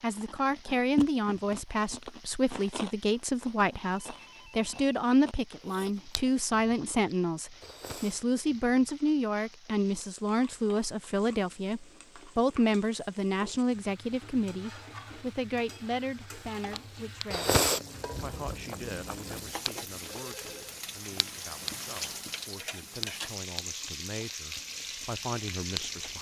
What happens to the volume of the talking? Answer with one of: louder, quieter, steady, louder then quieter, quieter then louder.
quieter.